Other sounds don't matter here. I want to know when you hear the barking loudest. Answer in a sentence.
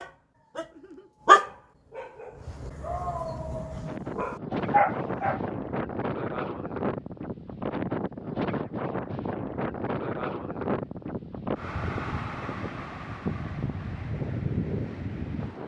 The volume of the barking peaks at 1 second.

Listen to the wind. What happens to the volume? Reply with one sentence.
The volume of the wind stays about the same.